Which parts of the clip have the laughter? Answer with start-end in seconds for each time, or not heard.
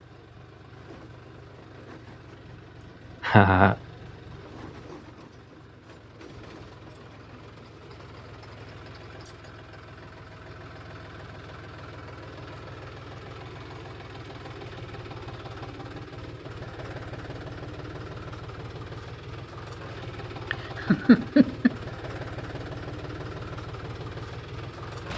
3.2-3.8, 20.5-21.8.